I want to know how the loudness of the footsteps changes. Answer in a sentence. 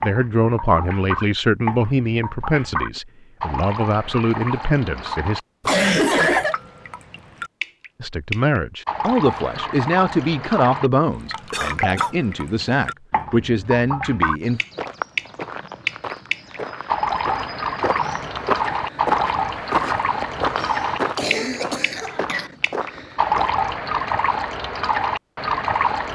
The volume of the footsteps goes up, then down.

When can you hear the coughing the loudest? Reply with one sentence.
The loudest moment of the coughing is at 6 seconds.